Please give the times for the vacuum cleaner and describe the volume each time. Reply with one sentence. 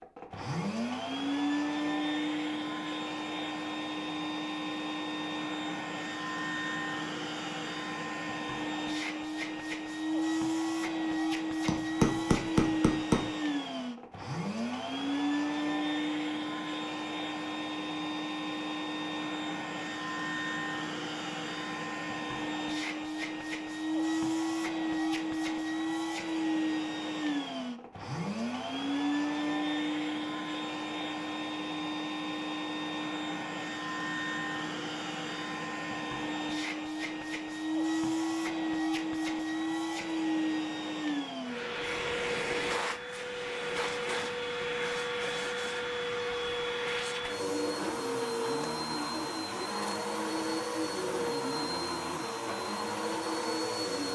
You can hear the vacuum cleaner from 0.0 to 54.0 s, at a steady volume.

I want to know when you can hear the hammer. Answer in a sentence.
The hammer can be heard from 11.7 to 13.2 s.